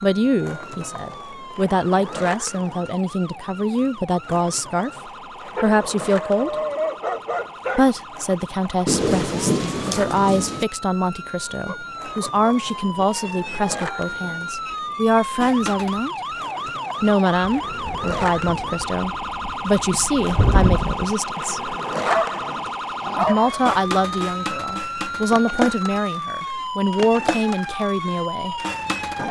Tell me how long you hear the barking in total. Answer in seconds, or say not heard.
6 s.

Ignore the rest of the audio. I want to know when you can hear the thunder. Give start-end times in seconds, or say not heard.
8.8-10.7, 17.4-21.1.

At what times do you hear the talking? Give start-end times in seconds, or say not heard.
0.0-4.9, 5.6-6.5, 7.8-16.1, 17.0-21.8, 23.1-28.6.